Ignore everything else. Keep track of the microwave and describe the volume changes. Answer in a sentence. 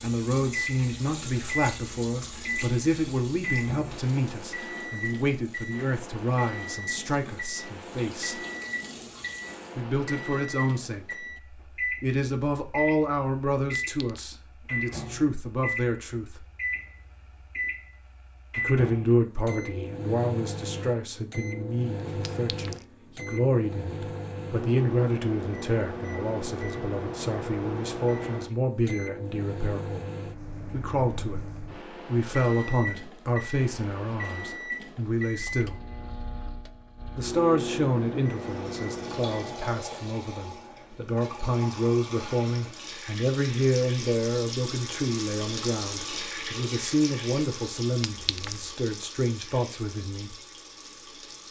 The volume of the microwave stays about the same.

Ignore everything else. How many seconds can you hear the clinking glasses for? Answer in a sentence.
The clinking glasses can be heard for 2 seconds in total.